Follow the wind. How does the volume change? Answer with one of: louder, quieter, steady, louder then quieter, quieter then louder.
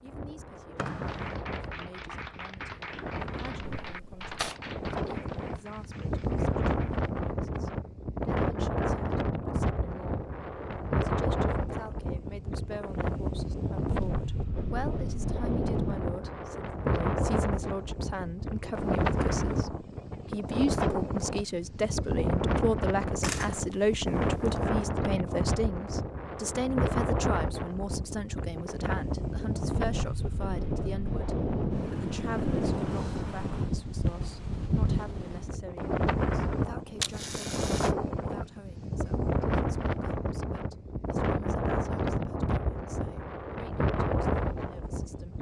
steady.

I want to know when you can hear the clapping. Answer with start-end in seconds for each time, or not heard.
1.1-6.9.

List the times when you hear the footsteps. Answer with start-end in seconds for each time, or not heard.
not heard.